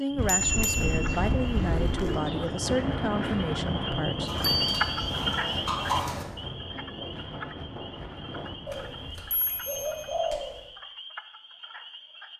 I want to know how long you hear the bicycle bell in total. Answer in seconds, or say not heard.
4 s.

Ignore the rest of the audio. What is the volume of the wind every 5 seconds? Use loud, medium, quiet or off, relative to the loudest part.
loud, medium, off.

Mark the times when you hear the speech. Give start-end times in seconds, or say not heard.
0.0-4.3.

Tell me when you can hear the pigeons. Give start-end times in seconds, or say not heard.
0.5-2.5, 4.2-6.2, 8.7-10.7.